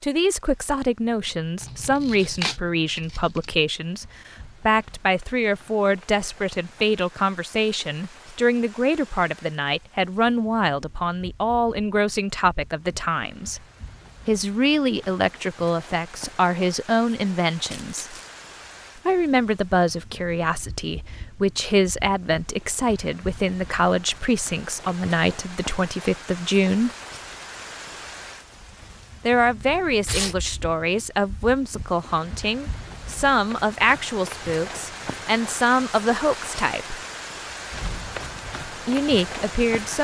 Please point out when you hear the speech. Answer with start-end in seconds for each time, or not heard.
0.0-13.6, 14.2-18.1, 19.1-26.9, 29.2-37.0, 38.9-39.9.